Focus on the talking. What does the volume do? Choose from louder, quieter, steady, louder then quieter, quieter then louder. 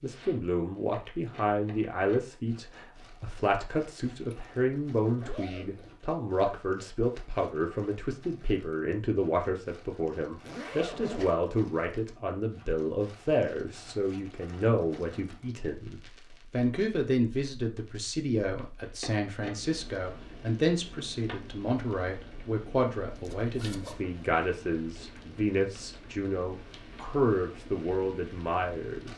steady.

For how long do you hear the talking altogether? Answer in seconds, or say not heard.
29 s.